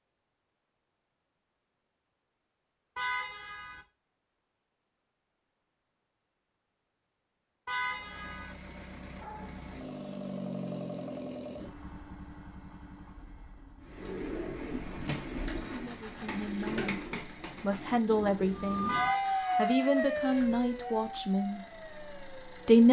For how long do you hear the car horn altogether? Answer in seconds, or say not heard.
3 s.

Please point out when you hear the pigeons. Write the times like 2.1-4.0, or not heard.
13.8-19.1.